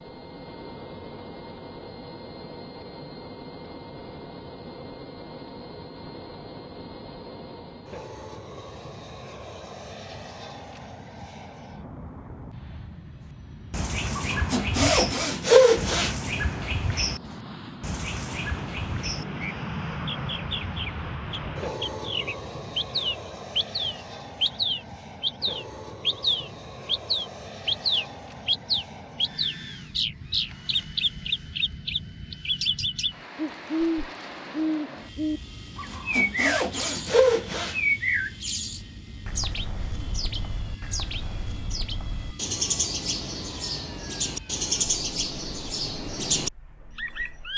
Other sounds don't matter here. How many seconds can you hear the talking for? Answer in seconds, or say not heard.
not heard.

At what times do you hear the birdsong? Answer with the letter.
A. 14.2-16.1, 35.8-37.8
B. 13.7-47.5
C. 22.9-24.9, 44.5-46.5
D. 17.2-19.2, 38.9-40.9
B.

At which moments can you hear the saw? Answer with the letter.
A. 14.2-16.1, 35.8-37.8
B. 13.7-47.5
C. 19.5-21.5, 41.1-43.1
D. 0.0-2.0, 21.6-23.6
A.